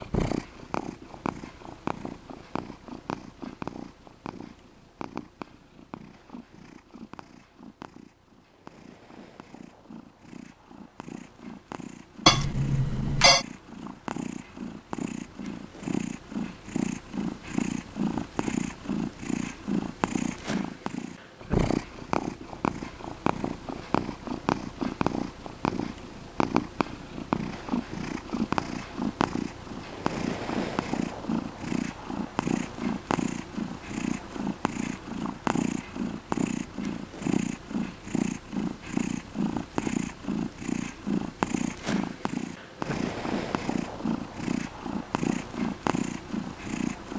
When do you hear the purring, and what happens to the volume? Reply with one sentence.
You can hear the purring from 0.0 to 47.1 s, getting louder.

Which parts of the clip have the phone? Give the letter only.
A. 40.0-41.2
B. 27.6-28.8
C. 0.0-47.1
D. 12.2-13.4
D.